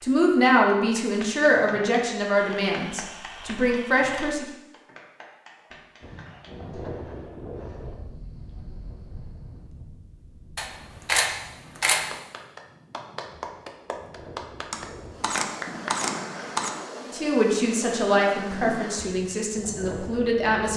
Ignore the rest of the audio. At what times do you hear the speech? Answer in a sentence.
The speech can be heard from 0.0 to 4.5 s and from 17.1 to 20.7 s.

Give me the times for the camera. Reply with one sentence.
The camera can be heard from 2.4 to 4.2 s, from 10.6 to 12.1 s and from 14.7 to 16.7 s.